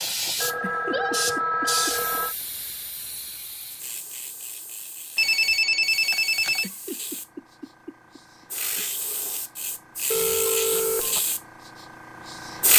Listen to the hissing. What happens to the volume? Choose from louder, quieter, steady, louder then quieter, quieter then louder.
quieter then louder.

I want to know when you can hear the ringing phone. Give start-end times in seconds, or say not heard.
0.3-2.4, 5.2-6.7, 10.1-11.2.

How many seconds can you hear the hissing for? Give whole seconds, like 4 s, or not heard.
13 s.